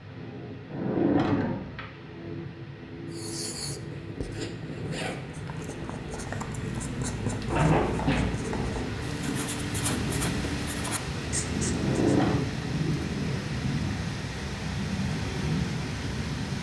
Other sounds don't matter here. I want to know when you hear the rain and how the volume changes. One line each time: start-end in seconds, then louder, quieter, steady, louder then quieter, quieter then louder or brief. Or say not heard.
0.0-16.5 louder.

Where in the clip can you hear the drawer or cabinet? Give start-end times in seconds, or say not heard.
0.7-1.9, 7.5-8.3, 11.7-12.4.